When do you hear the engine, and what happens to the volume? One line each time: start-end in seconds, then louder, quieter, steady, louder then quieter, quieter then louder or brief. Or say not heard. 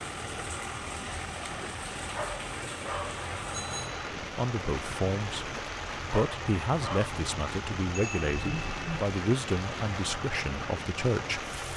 0.0-11.7 steady.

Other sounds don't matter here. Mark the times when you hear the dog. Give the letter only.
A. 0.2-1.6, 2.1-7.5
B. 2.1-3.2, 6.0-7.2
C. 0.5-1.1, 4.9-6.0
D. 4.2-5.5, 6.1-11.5
B.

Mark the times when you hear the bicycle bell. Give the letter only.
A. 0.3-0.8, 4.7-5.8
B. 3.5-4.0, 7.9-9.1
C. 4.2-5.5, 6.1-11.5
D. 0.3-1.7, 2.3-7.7
B.